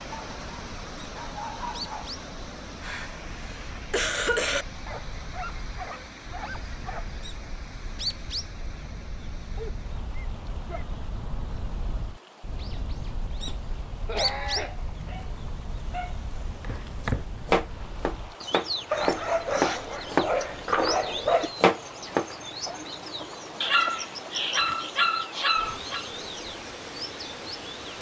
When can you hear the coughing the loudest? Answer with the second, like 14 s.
4 s.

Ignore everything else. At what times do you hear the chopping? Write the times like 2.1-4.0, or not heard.
16.6-22.3.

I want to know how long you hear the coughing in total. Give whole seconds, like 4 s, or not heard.
5 s.